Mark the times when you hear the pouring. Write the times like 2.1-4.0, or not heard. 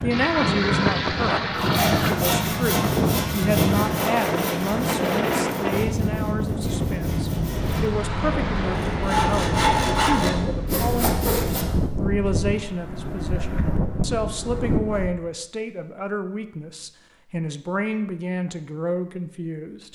0.1-2.1.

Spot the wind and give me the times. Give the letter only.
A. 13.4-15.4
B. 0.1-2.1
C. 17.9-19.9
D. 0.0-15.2
D.